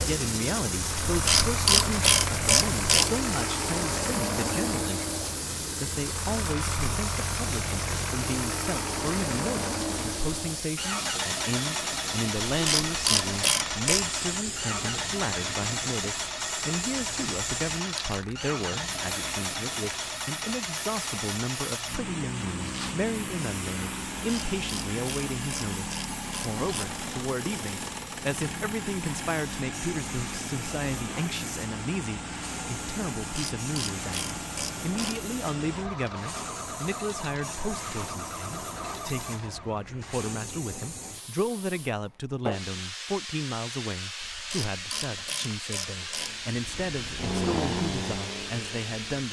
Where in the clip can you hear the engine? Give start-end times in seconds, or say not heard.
0.0-39.8, 46.1-49.2.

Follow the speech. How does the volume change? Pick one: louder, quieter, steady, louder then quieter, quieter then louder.
steady.